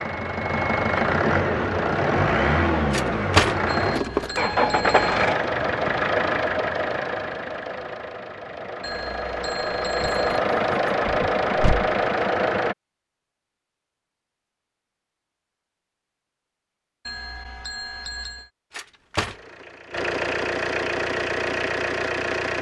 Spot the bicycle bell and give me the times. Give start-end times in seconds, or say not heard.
3.6-5.2, 8.8-10.4, 17.1-18.5.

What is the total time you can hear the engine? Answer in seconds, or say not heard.
16 s.